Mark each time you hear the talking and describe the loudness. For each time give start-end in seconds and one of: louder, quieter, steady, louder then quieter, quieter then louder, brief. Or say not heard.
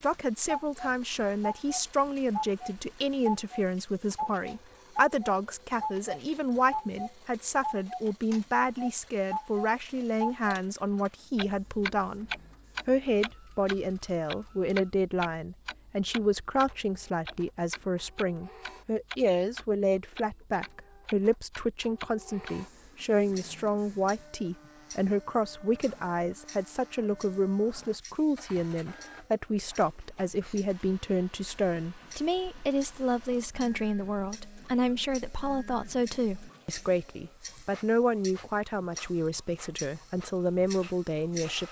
0.0-41.6 steady.